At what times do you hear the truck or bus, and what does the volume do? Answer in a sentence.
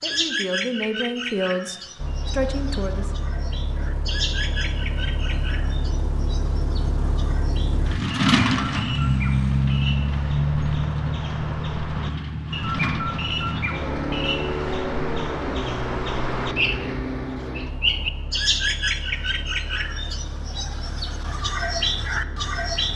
You can hear the truck or bus from 1.9 to 22.9 s, getting louder then quieter.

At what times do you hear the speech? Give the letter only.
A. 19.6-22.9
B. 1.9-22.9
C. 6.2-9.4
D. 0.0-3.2
D.